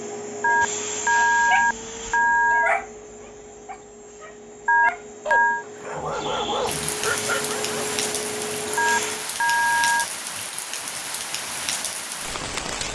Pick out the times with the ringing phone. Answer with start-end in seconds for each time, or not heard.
0.4-2.8, 4.7-5.7, 8.8-10.1.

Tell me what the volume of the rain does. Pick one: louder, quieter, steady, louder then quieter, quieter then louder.
steady.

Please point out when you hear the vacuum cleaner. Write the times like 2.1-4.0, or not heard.
0.0-9.3.